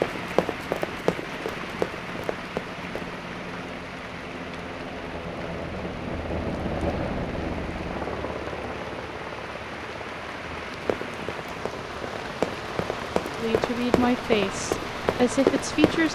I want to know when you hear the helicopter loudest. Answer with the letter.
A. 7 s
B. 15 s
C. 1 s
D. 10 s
A.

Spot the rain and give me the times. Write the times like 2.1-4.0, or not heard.
0.0-16.1.